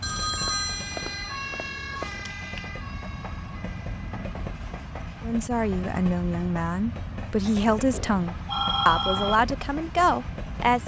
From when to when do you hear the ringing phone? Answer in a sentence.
You can hear the ringing phone from 0.0 to 2.2 s and from 7.9 to 9.4 s.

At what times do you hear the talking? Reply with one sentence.
You can hear the talking from 5.2 to 10.8 s.